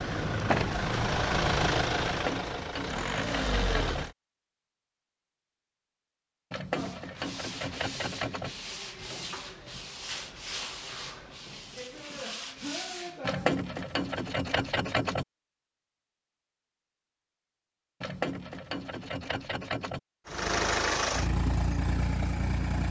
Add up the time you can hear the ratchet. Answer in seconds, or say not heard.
8 s.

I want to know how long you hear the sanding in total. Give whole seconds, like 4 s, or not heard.
7 s.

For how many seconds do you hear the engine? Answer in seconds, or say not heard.
7 s.